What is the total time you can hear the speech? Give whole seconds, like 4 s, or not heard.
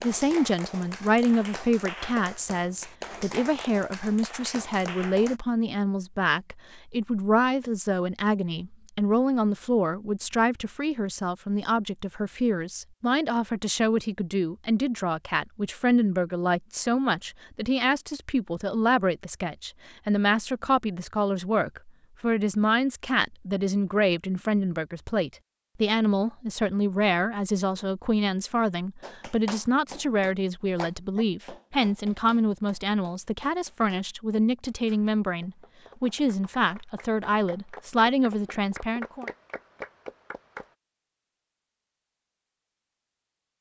39 s.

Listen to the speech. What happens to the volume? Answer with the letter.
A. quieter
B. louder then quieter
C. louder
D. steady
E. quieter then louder
D.